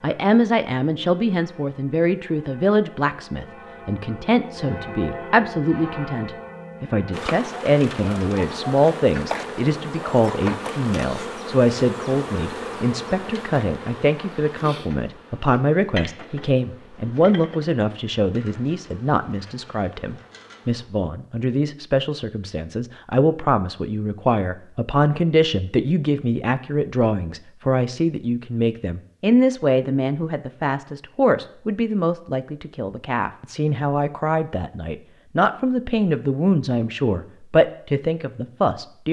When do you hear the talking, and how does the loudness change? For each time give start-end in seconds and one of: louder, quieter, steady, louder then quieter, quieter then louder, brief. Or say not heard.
0.0-39.0 steady.